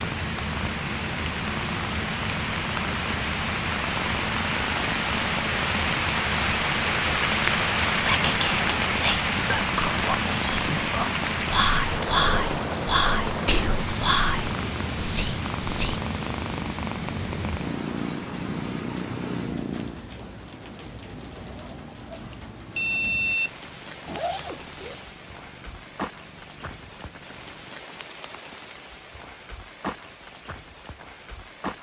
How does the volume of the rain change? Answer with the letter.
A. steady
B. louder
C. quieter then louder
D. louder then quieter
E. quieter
E.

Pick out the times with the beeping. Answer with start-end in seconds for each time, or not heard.
22.3-23.5.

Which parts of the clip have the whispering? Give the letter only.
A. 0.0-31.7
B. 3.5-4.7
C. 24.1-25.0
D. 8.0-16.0
D.